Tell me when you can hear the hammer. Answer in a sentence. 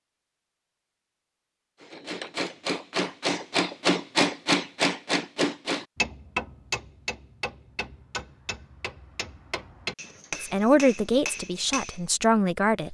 You can hear the hammer from 1.8 to 12.0 s.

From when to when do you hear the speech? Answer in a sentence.
The speech can be heard from 10.4 to 12.9 s.